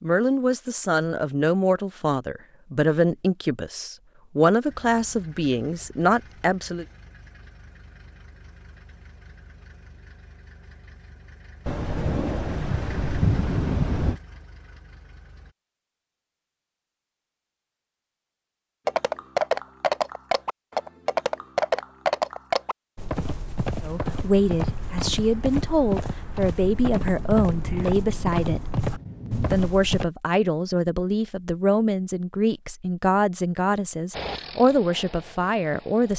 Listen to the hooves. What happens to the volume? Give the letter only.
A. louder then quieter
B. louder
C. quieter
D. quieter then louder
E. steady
C.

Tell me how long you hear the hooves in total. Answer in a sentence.
The hooves can be heard for 11 seconds in total.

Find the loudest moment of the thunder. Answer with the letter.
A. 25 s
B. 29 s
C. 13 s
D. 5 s
C.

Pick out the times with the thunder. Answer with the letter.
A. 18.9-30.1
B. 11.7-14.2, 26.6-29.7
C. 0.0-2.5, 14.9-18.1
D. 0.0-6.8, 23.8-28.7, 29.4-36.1
B.